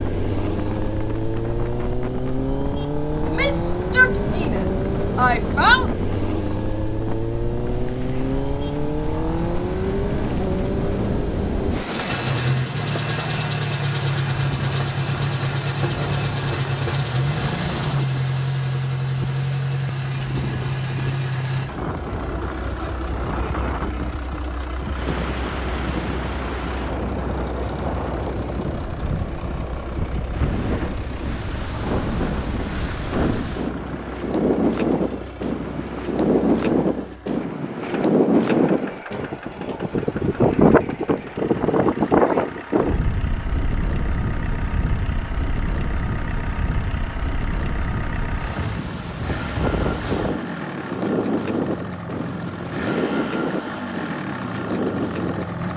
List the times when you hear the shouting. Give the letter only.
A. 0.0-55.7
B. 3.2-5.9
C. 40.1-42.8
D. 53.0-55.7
B.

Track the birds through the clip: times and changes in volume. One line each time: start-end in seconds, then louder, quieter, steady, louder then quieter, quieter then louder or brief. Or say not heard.
not heard.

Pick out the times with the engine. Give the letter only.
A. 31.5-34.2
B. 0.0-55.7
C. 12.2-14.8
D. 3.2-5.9
B.